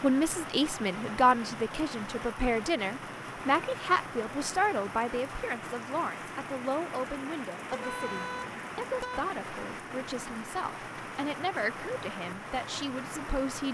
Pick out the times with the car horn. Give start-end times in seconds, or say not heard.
7.7-9.2.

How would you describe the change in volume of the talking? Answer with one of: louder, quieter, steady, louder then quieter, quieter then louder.
quieter.